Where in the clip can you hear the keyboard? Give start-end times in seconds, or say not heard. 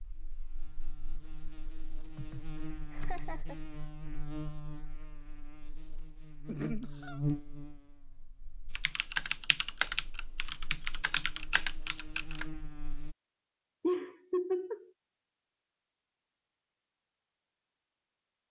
8.8-12.4.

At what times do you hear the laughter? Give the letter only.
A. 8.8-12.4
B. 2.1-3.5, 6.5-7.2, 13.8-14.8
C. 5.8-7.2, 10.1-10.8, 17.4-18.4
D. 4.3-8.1
B.